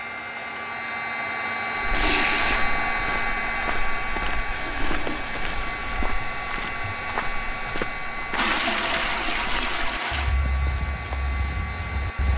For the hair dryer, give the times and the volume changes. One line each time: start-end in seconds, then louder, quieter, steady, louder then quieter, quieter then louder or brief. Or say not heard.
0.0-12.3 quieter.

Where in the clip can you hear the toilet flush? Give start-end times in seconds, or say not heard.
1.9-2.6, 4.5-5.9, 8.3-10.3.